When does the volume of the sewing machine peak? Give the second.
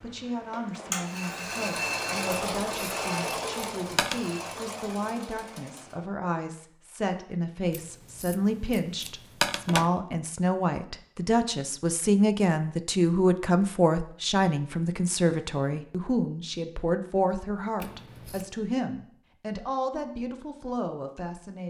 2 s.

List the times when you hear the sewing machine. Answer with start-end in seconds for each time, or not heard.
0.0-6.1.